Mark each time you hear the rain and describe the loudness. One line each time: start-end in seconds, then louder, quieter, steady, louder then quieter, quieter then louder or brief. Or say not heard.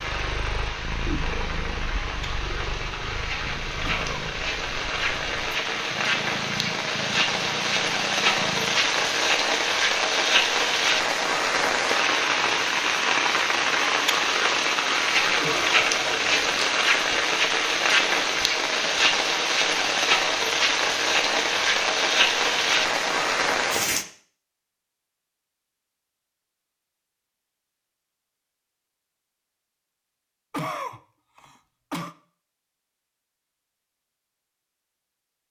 0.0-24.1 louder.